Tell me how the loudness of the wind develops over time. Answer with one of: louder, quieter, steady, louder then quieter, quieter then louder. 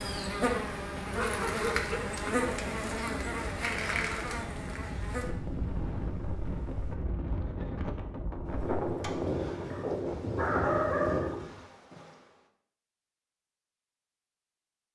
louder.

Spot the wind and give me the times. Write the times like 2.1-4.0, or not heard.
0.0-11.4.